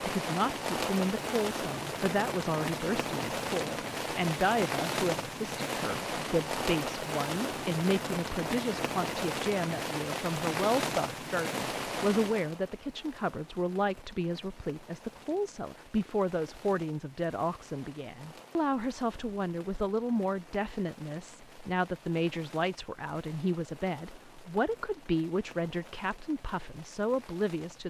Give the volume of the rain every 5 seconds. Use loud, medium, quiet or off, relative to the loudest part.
loud, loud, loud, quiet, quiet, quiet.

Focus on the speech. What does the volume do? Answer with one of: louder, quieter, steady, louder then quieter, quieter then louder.
steady.